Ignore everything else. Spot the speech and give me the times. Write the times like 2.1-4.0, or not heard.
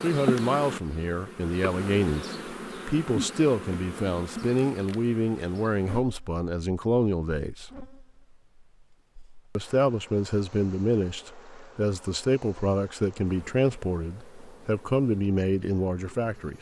0.0-7.7, 9.6-16.5.